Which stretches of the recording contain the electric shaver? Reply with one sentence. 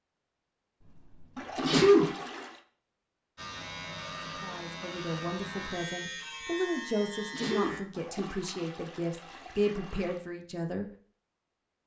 The electric shaver can be heard from 3.4 to 7.8 s.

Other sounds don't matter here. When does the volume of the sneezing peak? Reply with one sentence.
The volume of the sneezing peaks at 2 seconds.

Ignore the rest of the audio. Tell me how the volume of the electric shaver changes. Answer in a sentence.
The loudness of the electric shaver stays about the same.